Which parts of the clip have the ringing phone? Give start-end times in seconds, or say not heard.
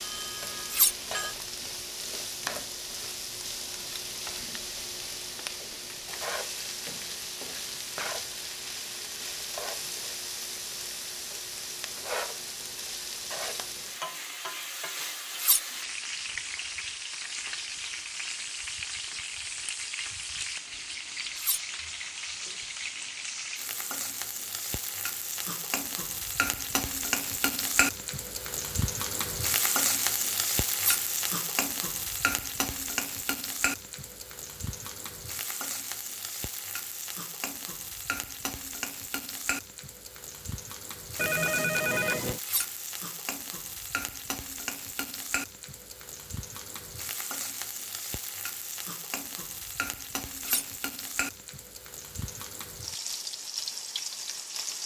0.0-1.4, 41.1-42.4.